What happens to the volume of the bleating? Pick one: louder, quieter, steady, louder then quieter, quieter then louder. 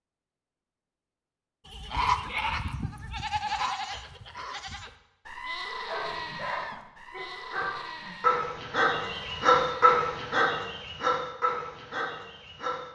quieter.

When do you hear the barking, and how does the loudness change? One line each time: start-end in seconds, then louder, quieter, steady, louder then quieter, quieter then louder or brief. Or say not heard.
5.8-12.9 louder then quieter.